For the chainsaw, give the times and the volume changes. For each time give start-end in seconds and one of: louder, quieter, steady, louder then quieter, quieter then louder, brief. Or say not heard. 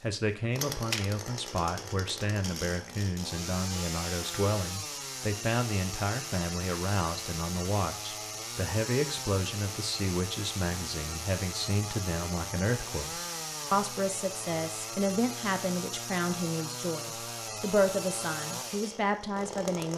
0.0-19.9 steady.